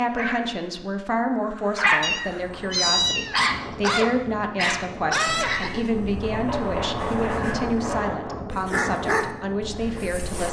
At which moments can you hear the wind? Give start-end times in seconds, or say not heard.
2.3-10.4.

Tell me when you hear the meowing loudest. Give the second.
3 s.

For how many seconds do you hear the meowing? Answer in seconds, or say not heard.
4 s.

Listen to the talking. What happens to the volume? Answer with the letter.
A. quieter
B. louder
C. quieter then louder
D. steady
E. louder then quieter
D.